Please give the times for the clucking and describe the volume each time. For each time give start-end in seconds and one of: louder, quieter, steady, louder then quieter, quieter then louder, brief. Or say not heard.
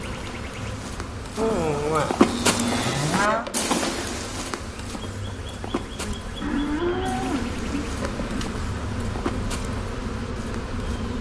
not heard.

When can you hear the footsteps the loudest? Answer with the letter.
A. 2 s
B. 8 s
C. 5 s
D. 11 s
A.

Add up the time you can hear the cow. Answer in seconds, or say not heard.
4 s.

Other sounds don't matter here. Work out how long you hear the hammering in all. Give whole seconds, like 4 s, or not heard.
not heard.